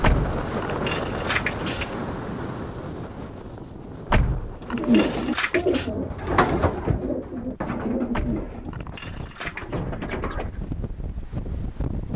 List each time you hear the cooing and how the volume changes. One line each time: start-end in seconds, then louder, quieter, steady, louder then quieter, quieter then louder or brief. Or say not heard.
4.7-10.6 quieter.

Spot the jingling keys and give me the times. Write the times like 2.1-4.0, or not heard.
0.0-1.9, 4.0-5.9, 8.1-9.8.